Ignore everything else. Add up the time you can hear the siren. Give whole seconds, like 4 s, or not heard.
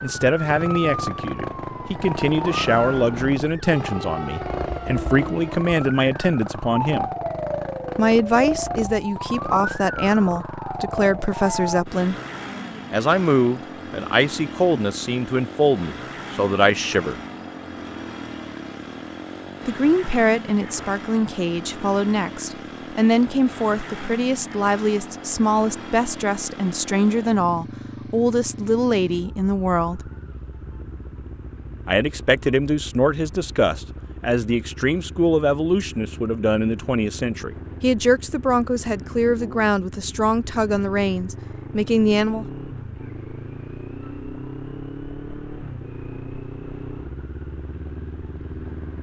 12 s.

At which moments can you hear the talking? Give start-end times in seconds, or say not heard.
0.0-7.1, 8.0-12.2, 12.9-17.2, 19.6-30.0, 31.9-42.5.